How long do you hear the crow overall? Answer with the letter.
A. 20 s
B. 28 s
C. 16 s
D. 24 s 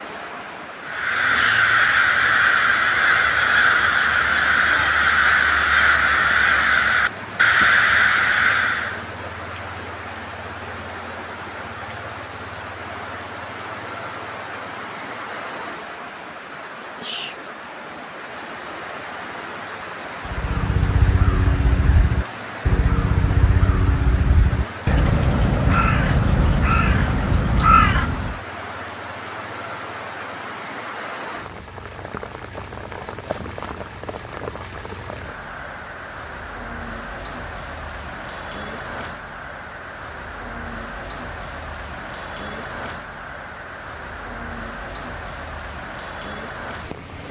C.